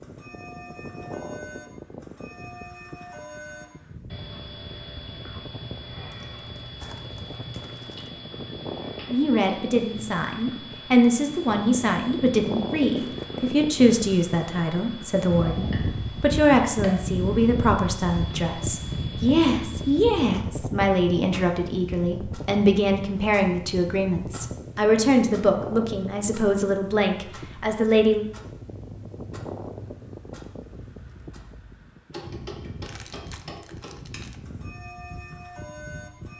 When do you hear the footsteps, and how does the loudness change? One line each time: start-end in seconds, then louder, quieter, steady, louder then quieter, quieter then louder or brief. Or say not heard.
not heard.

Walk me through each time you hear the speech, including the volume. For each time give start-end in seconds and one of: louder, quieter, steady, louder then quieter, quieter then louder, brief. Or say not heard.
9.1-28.2 steady.